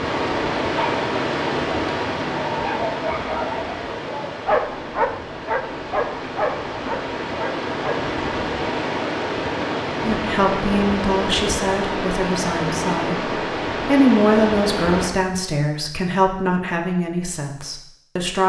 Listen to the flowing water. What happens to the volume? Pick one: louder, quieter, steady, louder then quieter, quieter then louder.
quieter then louder.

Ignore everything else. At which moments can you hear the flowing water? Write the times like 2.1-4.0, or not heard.
0.0-15.1.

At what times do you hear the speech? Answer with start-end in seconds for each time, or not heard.
10.0-18.4.